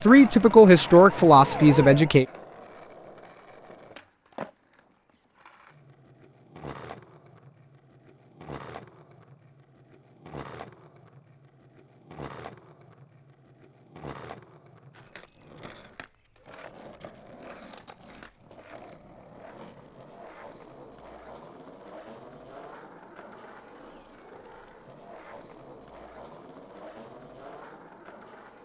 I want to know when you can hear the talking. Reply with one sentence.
The talking can be heard from 0.0 to 2.2 s.